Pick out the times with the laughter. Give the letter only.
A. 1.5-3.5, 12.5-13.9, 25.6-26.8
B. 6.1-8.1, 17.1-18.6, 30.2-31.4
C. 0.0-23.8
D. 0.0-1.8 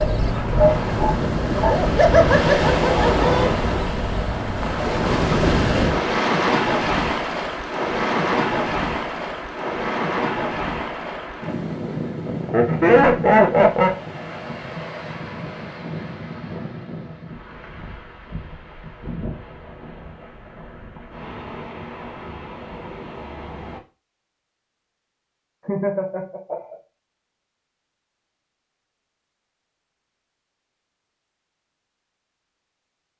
A.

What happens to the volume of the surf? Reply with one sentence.
The volume of the surf goes down.